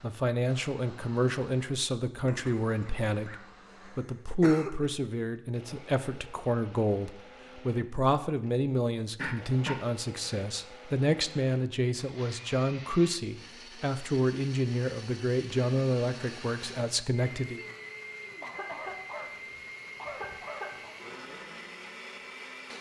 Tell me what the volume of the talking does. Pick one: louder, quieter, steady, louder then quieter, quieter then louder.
steady.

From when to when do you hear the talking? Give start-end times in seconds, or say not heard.
0.0-17.6.